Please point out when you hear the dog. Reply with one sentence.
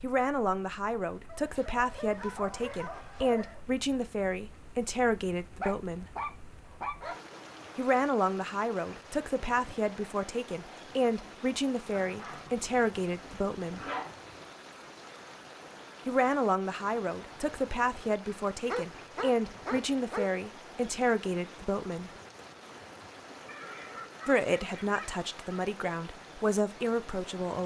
You can hear the dog from 1.2 to 3.6 s, from 5.6 to 7.2 s, from 11.9 to 14.4 s, from 18.6 to 20.4 s and from 23.4 to 25.6 s.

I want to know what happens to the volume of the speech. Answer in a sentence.
The volume of the speech stays about the same.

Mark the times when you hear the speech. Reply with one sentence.
You can hear the speech from 0.0 to 6.1 s, from 7.8 to 13.8 s, from 16.1 to 22.1 s and from 24.2 to 27.6 s.